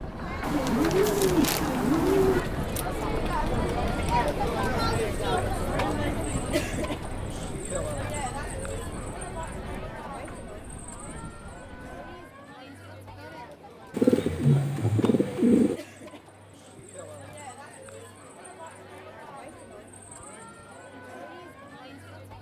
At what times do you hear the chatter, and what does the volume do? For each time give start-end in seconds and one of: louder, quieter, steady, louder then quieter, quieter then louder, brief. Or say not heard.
0.0-22.3 quieter.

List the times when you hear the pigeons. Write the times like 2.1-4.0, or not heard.
0.4-2.4, 13.9-15.8.